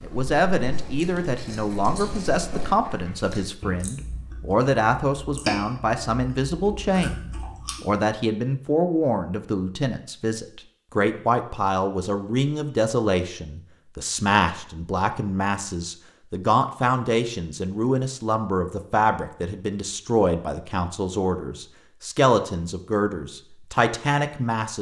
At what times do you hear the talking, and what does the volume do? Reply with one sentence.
You can hear the talking from 0.0 to 24.7 s, at a steady volume.